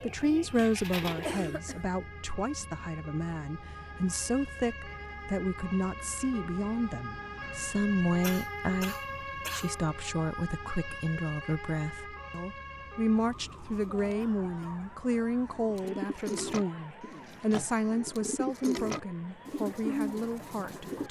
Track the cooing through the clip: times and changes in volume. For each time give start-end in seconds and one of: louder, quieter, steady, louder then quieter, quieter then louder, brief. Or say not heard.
0.0-1.6 brief
15.4-21.0 quieter then louder.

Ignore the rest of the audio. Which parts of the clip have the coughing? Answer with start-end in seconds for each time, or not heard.
1.2-1.8, 8.2-9.7, 14.2-14.9.